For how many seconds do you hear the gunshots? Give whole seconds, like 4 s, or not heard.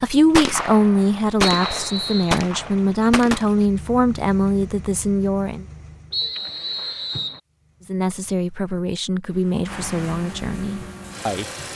3 s.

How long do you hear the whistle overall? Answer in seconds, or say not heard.
2 s.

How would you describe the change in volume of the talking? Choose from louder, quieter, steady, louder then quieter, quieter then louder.
quieter.